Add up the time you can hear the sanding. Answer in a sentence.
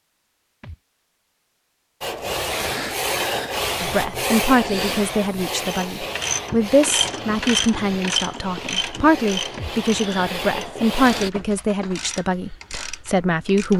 The sanding can be heard for 9 seconds in total.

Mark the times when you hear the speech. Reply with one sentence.
The speech can be heard from 3.8 to 13.7 s.